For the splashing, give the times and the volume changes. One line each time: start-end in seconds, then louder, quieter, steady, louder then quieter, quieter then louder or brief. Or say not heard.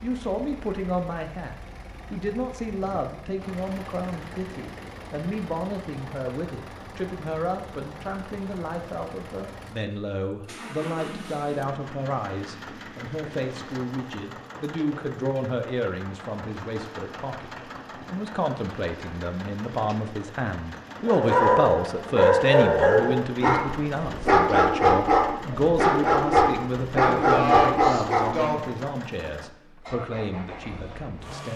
not heard.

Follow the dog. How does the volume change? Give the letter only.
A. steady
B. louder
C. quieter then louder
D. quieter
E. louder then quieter
A.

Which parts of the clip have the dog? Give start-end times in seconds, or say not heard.
21.1-28.6.